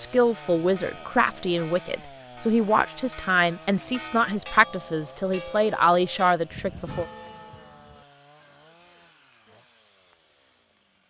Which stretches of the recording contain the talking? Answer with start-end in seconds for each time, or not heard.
0.0-7.0.